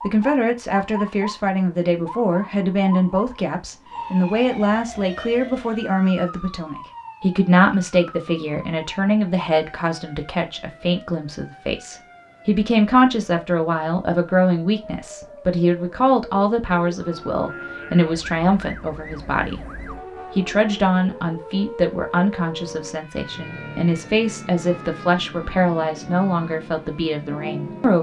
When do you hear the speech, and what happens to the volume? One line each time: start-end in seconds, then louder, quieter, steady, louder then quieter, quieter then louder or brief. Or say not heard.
0.0-27.9 steady.